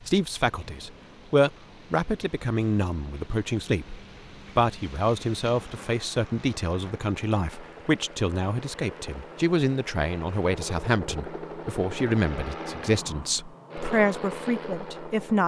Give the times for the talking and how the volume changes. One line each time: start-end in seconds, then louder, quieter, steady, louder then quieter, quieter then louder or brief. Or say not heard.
0.1-15.4 steady.